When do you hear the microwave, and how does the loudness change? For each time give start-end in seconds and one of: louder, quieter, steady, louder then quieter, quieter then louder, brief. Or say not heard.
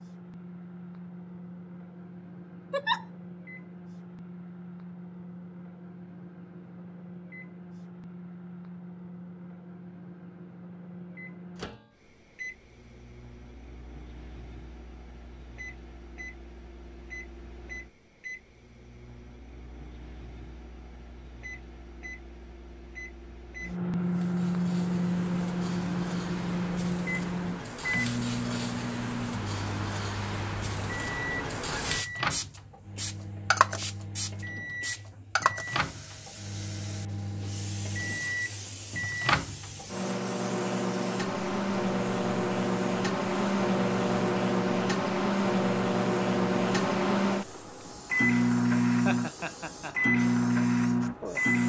0.0-51.6 louder.